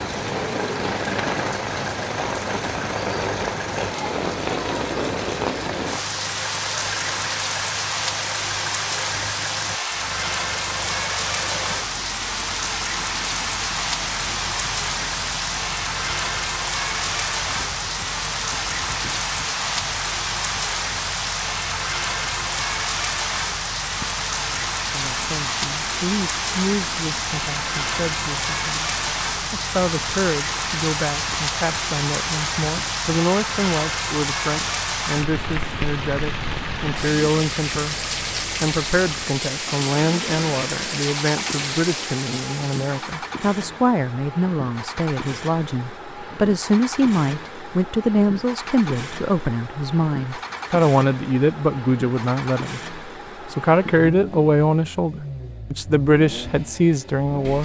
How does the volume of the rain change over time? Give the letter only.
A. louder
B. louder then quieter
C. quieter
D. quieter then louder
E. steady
E.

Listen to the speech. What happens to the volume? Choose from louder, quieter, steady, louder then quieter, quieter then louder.
louder.